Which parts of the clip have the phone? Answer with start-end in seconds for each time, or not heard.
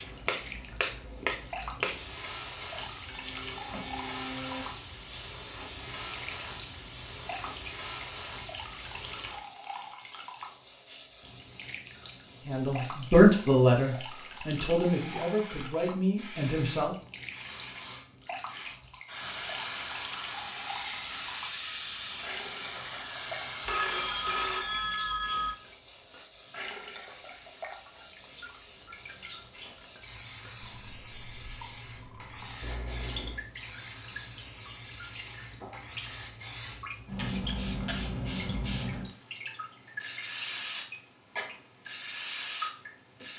3.0-4.7, 23.6-25.5, 32.6-33.5.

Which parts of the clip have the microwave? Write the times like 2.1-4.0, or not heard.
not heard.